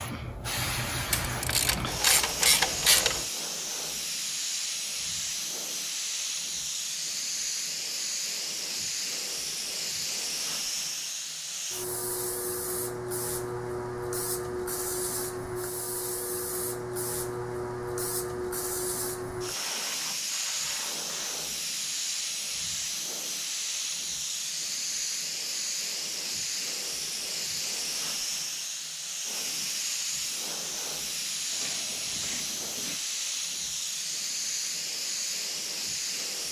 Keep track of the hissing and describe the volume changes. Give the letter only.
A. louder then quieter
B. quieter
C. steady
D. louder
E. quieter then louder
C.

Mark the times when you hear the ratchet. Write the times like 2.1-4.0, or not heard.
1.1-3.2, 19.5-21.4, 31.5-33.0.